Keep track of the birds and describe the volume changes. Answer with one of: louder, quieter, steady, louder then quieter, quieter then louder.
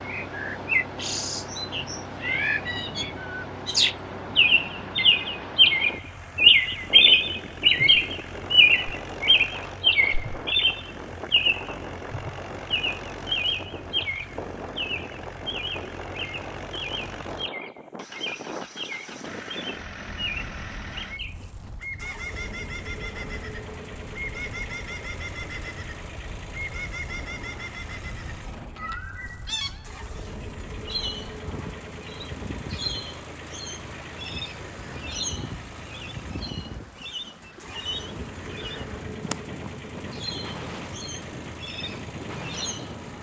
quieter.